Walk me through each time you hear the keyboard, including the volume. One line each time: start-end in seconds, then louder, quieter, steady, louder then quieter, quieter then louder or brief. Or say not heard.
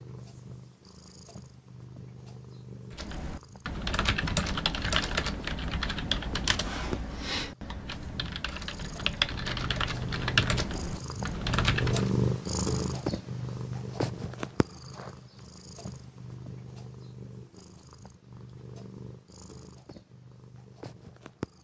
2.9-12.1 quieter then louder.